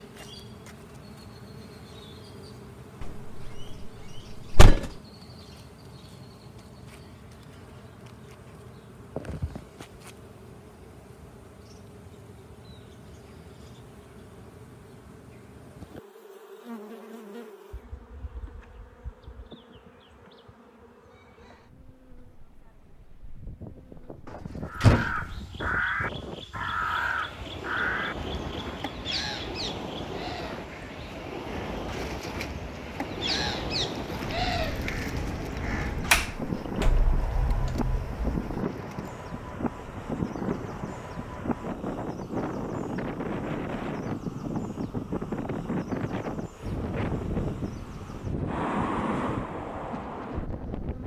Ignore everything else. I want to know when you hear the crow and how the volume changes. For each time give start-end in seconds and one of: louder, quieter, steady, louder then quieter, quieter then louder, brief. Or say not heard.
24.6-36.3 quieter then louder.